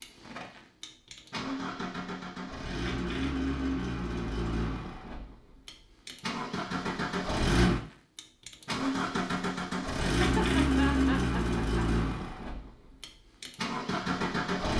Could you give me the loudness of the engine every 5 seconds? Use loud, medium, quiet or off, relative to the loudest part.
medium, loud, loud.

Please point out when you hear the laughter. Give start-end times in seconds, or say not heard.
10.0-11.8.